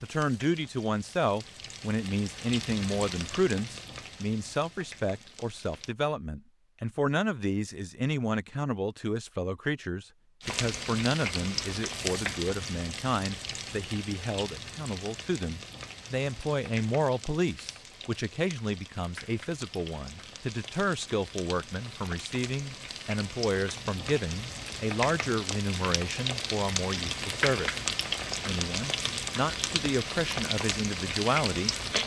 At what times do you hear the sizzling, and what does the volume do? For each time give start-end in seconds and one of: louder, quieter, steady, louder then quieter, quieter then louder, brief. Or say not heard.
0.0-6.0 louder then quieter
10.4-32.0 quieter then louder.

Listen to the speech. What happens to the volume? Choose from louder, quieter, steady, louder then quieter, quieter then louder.
steady.